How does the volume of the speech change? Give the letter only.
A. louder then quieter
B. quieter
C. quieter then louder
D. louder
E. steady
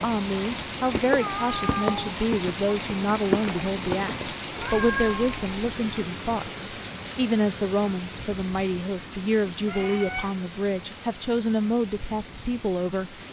E.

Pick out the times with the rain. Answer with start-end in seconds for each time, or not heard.
0.0-13.2.